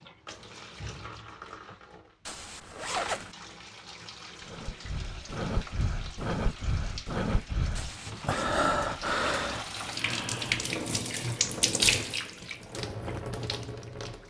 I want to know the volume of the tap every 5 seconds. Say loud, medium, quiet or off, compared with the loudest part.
quiet, medium, loud.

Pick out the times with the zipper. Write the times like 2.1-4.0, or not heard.
2.2-3.4, 7.8-8.5.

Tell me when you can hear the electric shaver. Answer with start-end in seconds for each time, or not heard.
not heard.